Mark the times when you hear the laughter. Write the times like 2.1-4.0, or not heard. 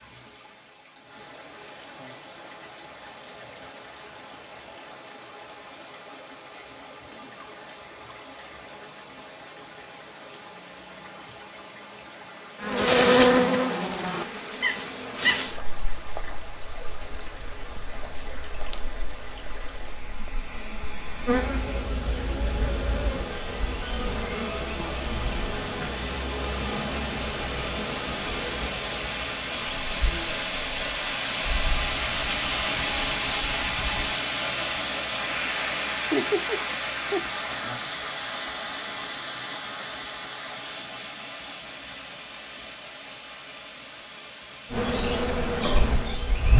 36.1-37.2.